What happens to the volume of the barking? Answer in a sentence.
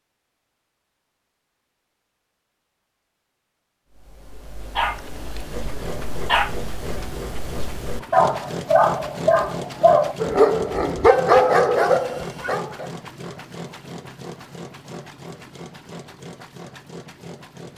The loudness of the barking goes up.